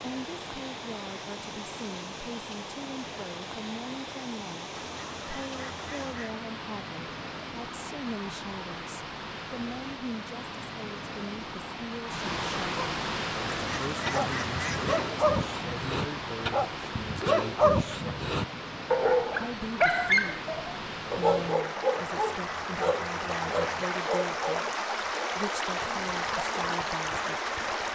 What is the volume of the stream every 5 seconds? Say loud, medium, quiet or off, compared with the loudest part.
medium, medium, loud, medium, loud, loud.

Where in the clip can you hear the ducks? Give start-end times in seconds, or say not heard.
4.8-6.5, 13.6-15.1, 21.9-23.9.